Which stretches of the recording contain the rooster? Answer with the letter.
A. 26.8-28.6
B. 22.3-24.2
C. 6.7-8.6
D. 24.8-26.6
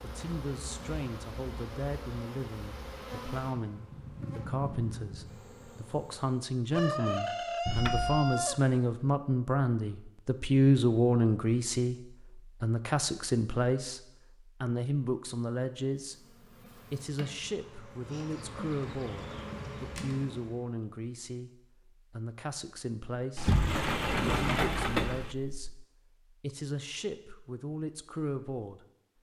C.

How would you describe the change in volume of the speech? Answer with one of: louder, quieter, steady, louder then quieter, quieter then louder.
louder then quieter.